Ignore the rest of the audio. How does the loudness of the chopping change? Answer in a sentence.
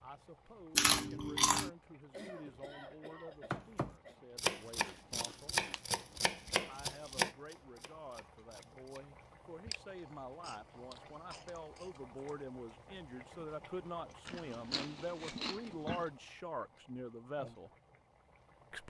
The loudness of the chopping goes down.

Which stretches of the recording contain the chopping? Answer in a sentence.
The chopping can be heard from 3.5 to 9.1 s.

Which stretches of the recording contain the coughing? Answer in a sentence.
You can hear the coughing from 2.1 to 4.2 s and from 10.4 to 11.9 s.